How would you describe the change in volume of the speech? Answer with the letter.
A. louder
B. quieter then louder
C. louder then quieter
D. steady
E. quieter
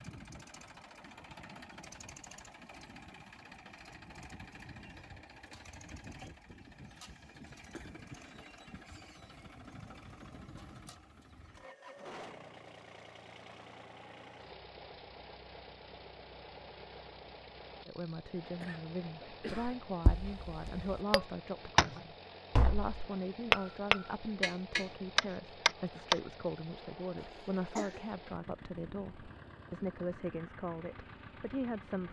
D.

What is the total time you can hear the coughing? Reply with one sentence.
The coughing can be heard for 3 seconds in total.